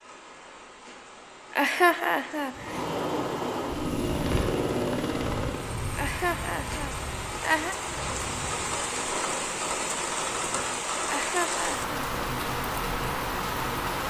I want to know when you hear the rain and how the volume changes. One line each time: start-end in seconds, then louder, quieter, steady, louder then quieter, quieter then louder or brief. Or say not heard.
0.0-14.0 louder.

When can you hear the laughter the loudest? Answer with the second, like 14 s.
2 s.